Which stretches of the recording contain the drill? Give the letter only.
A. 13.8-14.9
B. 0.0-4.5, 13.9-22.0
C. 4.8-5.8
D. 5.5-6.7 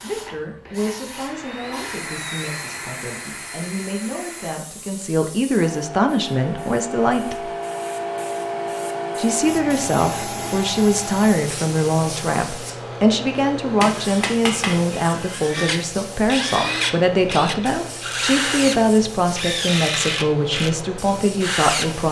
B.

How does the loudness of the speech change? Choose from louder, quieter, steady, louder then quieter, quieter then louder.
louder.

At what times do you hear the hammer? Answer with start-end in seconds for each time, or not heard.
13.8-14.9.